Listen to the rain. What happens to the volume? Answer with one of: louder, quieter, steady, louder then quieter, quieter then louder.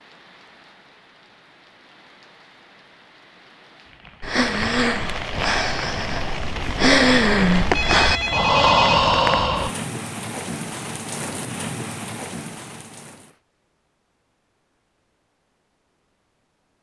louder.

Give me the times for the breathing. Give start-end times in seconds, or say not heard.
4.2-9.8.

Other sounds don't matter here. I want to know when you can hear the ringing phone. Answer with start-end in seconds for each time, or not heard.
7.7-9.0.